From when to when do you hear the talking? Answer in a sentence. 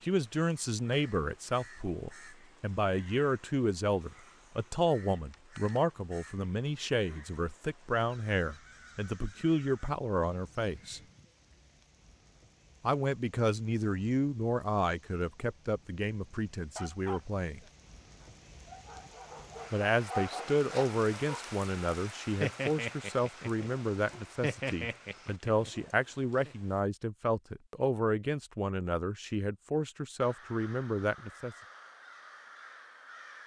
The talking can be heard from 0.0 to 11.0 s, from 12.8 to 17.6 s and from 19.7 to 31.6 s.